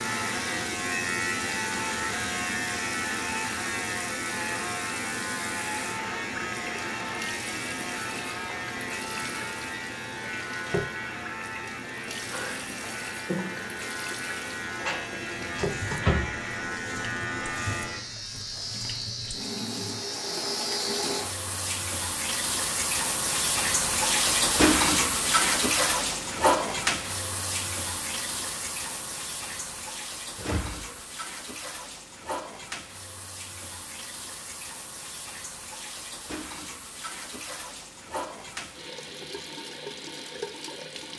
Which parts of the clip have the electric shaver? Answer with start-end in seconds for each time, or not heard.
0.0-21.2.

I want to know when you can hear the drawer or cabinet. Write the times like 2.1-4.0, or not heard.
14.8-16.3, 30.4-31.0.